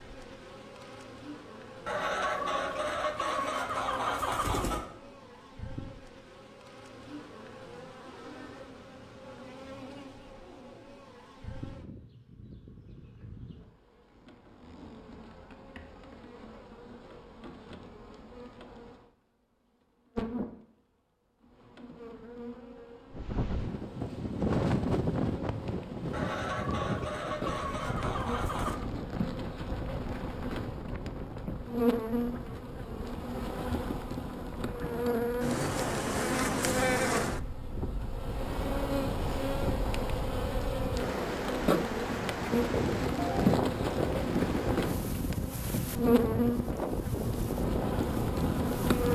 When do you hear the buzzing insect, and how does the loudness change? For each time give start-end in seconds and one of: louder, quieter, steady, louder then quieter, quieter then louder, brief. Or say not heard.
0.0-19.1 steady
20.1-49.0 louder.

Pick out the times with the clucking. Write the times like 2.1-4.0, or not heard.
1.9-4.8, 26.1-28.8.